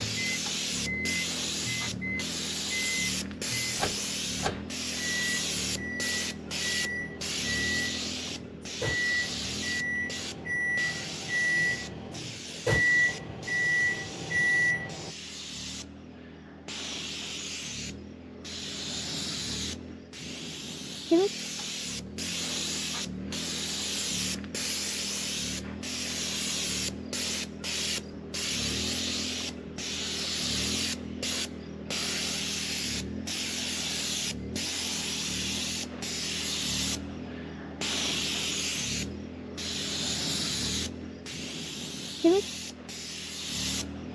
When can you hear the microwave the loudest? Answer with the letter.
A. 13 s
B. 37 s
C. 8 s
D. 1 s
A.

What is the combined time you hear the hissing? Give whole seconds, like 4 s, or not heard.
44 s.